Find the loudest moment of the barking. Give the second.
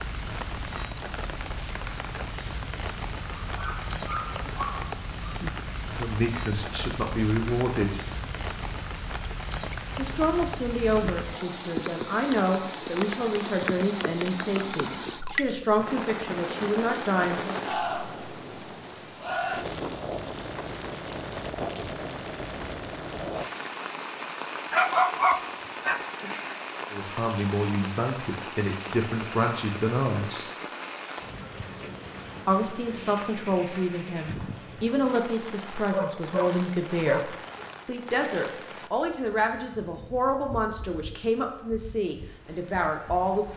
25 s.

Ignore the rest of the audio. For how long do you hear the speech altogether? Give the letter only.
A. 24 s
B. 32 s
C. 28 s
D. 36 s
A.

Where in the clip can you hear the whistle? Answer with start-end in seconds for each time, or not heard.
not heard.